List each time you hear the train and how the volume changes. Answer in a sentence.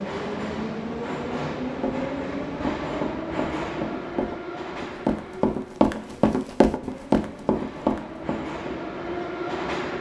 The train can be heard from 0.0 to 9.9 s, getting quieter then louder.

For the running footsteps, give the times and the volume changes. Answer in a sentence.
The running footsteps can be heard from 1.6 to 8.8 s, getting louder.